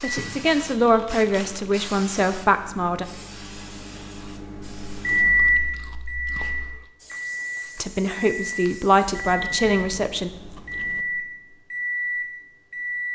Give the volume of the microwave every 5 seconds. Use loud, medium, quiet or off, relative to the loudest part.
quiet, loud, medium.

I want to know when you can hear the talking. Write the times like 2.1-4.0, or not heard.
0.0-3.0, 7.8-10.3.